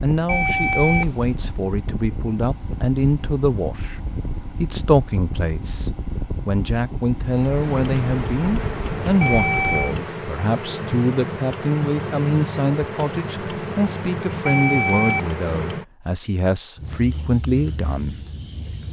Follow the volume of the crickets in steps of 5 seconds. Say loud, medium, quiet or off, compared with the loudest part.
off, loud, loud, loud.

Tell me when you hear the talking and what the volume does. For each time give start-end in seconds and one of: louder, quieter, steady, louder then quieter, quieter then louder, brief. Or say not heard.
0.0-18.2 steady.